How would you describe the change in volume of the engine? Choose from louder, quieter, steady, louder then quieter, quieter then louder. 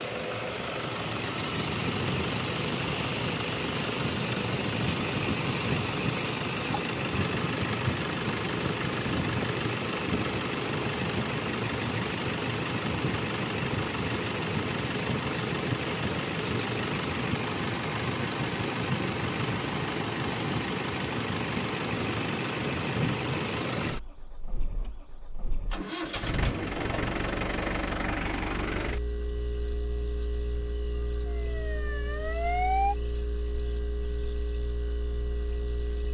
quieter.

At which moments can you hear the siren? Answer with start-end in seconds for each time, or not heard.
31.1-33.0.